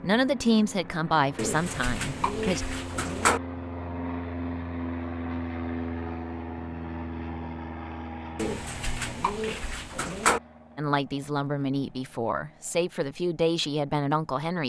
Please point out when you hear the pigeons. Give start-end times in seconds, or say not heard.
1.4-3.4, 8.3-10.4.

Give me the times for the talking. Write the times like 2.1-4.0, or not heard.
0.0-2.6, 10.8-14.6.